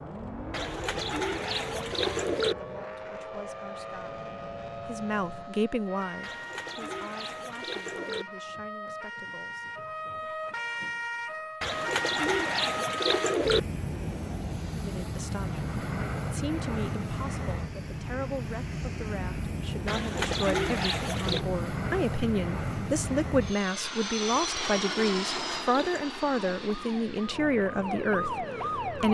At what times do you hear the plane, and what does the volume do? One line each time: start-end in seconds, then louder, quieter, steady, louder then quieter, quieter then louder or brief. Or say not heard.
0.0-5.5 steady
13.4-29.0 quieter.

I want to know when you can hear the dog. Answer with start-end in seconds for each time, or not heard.
not heard.